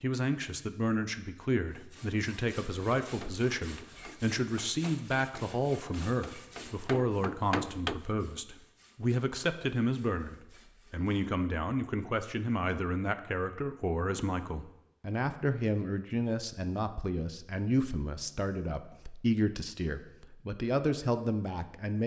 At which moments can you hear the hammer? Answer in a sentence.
The hammer can be heard from 3.0 to 8.0 s.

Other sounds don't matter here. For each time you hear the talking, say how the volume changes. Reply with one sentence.
The talking can be heard from 0.0 to 22.0 s, at a steady volume.